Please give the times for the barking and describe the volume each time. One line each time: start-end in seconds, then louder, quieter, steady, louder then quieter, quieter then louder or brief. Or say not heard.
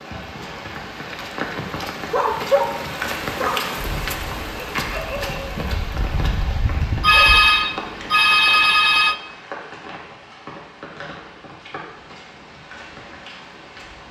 1.1-7.4 quieter then louder.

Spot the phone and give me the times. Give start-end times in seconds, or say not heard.
7.0-9.2.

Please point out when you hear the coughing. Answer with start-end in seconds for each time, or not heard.
not heard.